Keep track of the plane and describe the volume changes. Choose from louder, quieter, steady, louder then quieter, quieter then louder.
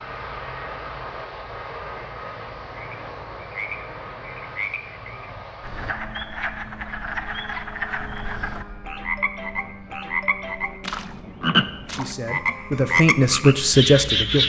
quieter.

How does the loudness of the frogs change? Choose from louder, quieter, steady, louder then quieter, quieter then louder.
louder.